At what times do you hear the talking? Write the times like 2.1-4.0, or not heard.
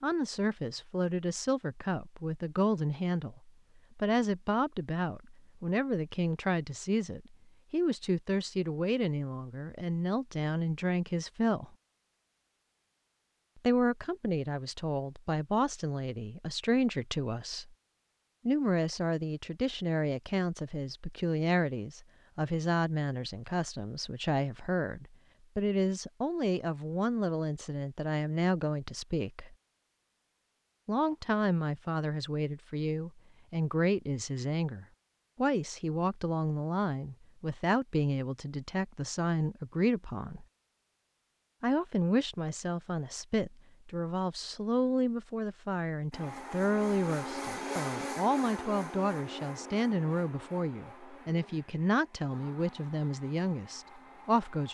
0.0-11.7, 13.6-17.7, 18.4-29.6, 30.9-40.5, 41.6-54.6.